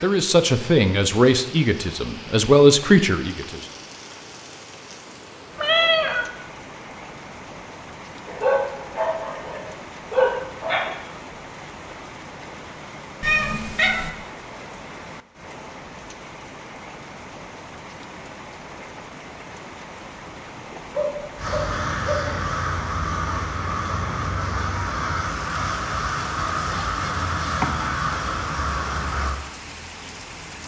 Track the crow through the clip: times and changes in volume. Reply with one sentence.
You can hear the crow from 21.4 to 29.4 s, at a steady volume.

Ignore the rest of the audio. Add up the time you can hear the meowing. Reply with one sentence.
The meowing can be heard for 3 seconds in total.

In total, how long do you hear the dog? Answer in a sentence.
The dog can be heard for 4 seconds in total.